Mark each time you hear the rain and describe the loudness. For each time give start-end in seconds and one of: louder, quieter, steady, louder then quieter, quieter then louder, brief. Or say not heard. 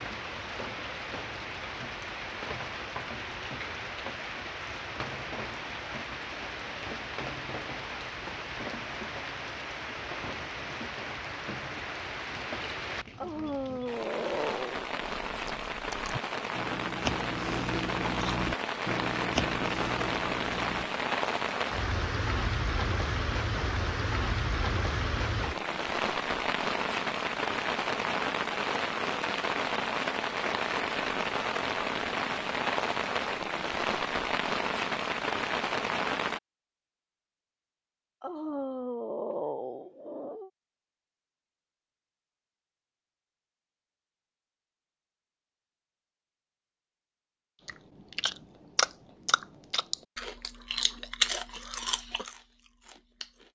0.0-36.4 louder.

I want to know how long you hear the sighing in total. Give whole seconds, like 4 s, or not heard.
4 s.